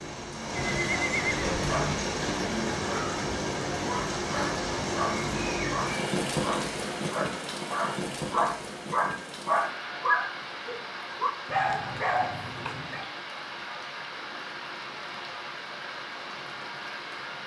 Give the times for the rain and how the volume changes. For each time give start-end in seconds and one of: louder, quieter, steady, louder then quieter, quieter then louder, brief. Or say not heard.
0.0-17.4 quieter.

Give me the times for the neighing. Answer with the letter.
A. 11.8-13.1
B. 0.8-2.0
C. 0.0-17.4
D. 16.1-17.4
B.